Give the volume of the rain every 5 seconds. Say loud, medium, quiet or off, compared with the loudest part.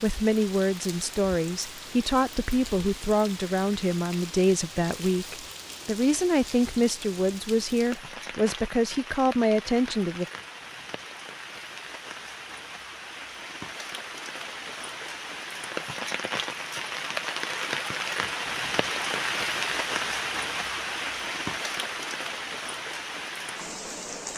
medium, medium, medium, loud, loud.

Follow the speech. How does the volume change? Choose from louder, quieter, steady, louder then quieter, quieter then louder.
steady.